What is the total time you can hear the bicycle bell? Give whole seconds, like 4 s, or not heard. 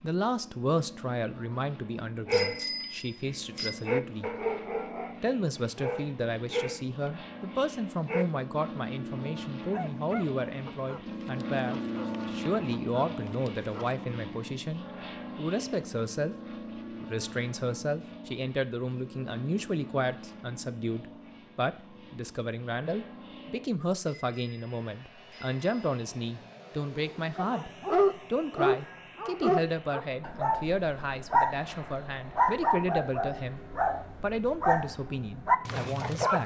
3 s.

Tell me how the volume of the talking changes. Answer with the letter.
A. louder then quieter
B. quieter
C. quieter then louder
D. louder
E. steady
E.